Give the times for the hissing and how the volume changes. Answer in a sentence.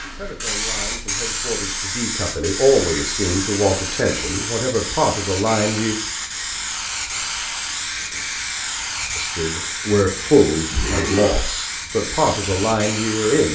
You can hear the hissing from 0.0 to 13.5 s, at a steady volume.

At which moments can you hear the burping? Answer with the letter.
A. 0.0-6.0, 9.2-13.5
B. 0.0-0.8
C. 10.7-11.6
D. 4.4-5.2
C.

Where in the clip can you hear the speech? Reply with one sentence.
The speech can be heard from 0.0 to 6.0 s and from 9.2 to 13.5 s.